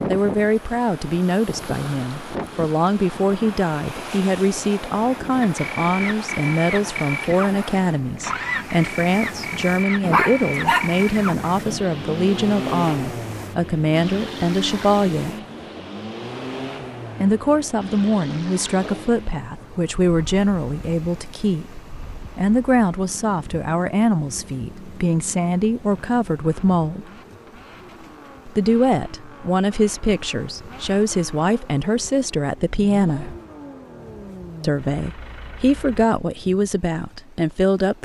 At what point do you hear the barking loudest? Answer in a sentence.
The volume of the barking peaks at 10 seconds.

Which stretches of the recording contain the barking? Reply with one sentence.
The barking can be heard from 10.0 to 11.8 s.